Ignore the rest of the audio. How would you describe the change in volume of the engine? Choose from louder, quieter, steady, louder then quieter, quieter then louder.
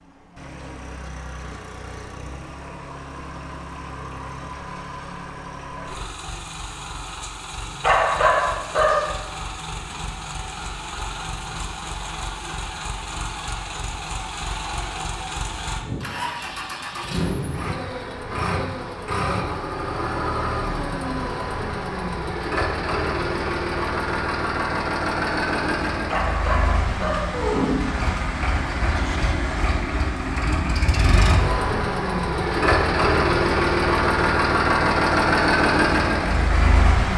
louder.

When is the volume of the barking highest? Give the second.
8 s.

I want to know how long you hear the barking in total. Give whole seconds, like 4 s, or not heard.
3 s.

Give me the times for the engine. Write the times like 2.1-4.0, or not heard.
0.0-37.1.